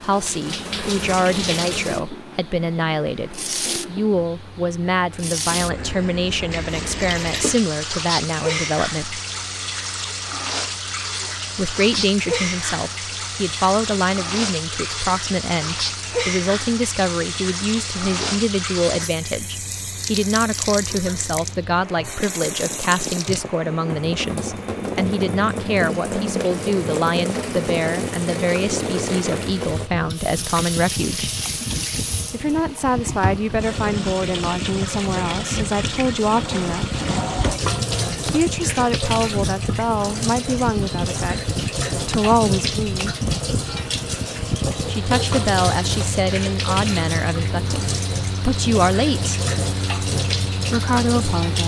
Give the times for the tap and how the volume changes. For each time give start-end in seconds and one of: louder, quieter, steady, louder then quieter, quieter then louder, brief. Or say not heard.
0.0-51.6 steady.